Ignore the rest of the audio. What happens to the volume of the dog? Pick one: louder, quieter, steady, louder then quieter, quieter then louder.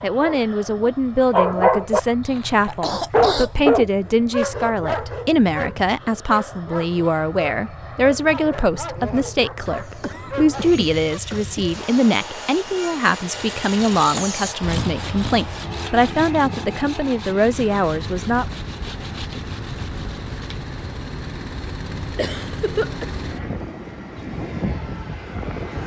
quieter.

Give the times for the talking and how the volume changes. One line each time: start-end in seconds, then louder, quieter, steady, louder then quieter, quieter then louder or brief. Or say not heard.
0.0-18.4 steady.